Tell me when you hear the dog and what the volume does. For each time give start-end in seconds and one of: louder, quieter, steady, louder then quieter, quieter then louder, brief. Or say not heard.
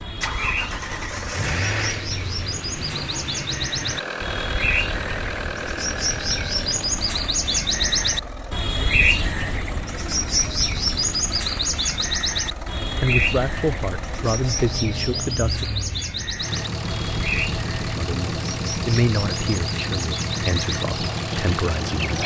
not heard.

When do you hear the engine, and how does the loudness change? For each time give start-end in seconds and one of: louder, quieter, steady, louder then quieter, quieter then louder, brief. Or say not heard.
0.0-22.2 quieter then louder.